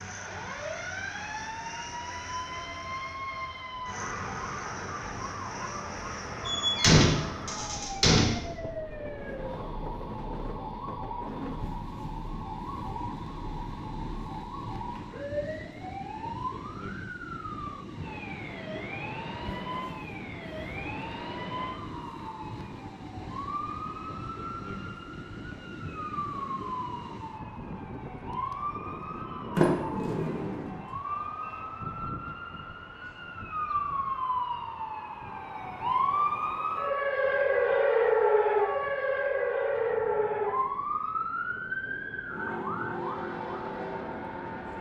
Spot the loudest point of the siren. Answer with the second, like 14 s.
38 s.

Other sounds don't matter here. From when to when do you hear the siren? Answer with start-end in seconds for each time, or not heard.
0.0-44.7.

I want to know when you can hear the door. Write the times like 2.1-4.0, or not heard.
6.5-8.4, 29.6-30.7.